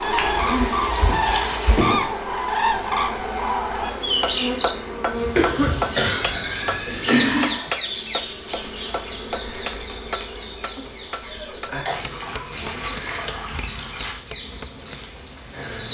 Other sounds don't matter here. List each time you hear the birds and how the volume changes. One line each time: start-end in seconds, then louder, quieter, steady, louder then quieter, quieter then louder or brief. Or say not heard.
0.0-15.8 quieter.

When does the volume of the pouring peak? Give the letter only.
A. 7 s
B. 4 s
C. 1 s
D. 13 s
A.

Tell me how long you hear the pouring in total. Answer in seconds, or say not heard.
6 s.